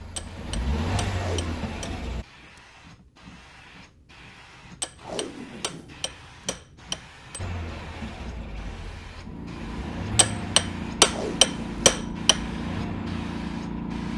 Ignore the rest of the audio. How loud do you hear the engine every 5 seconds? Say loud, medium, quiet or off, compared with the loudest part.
loud, medium, medium.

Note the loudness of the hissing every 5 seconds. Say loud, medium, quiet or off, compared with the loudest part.
quiet, medium, loud.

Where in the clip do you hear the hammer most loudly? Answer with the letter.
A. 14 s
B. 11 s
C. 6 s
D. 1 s
B.